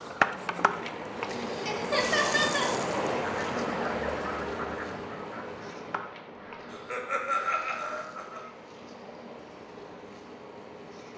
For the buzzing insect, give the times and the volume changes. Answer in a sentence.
You can hear the buzzing insect from 0.0 to 11.1 s, getting quieter.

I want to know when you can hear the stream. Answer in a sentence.
You can hear the stream from 0.0 to 11.1 s.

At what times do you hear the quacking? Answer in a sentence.
The quacking can be heard from 3.2 to 6.8 s.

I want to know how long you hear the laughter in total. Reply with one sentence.
You can hear the laughter for 3 seconds altogether.